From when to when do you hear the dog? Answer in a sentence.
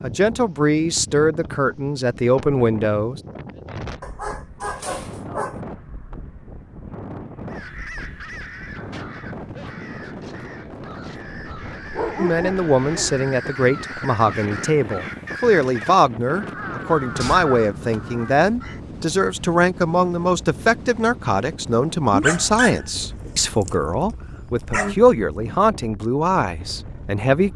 The dog can be heard from 4.0 to 5.6 s, from 11.9 to 13.2 s and from 22.1 to 24.9 s.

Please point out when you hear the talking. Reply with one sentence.
You can hear the talking from 0.0 to 3.2 s and from 12.2 to 27.5 s.